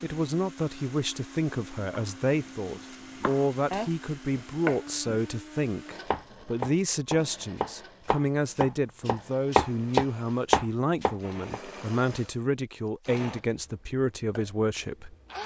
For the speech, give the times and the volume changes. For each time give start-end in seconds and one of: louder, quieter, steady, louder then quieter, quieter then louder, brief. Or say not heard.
0.0-15.4 steady.